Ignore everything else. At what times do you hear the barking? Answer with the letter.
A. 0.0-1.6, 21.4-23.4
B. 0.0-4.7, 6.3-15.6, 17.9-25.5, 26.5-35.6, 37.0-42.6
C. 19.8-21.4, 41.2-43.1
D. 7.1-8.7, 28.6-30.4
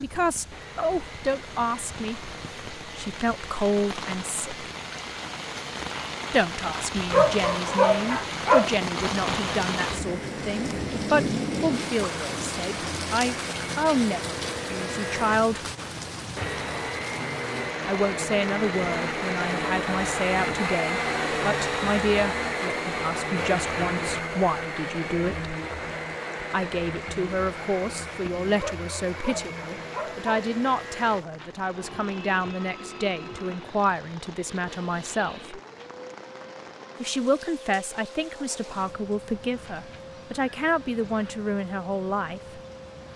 D.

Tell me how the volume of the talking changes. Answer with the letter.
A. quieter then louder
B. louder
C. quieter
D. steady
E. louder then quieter
D.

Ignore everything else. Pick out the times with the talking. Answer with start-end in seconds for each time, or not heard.
0.0-4.7, 6.3-15.6, 17.9-25.5, 26.5-35.6, 37.0-42.6.